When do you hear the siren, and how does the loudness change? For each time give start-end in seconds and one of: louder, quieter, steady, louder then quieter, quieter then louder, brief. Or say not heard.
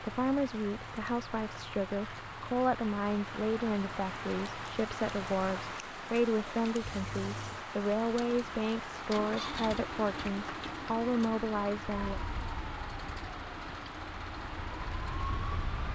11.8-15.8 quieter then louder.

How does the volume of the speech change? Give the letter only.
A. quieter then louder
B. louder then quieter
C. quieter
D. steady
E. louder
D.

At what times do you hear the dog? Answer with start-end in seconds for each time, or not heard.
not heard.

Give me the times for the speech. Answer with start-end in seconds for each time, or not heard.
0.0-12.2.